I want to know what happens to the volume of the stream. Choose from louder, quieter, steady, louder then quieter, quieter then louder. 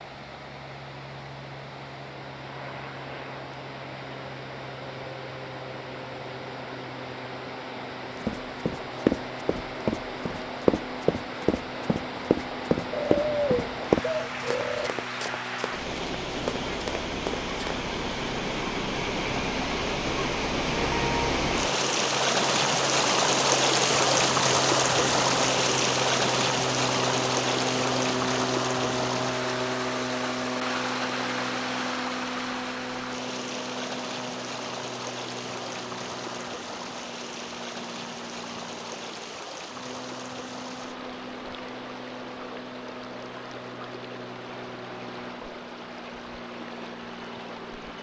louder then quieter.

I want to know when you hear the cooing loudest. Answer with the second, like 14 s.
13 s.